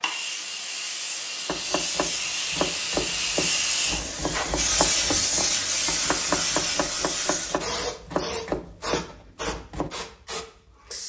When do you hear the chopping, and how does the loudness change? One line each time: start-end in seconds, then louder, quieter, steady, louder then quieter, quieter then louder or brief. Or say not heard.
1.4-9.9 steady.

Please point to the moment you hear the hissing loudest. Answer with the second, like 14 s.
5 s.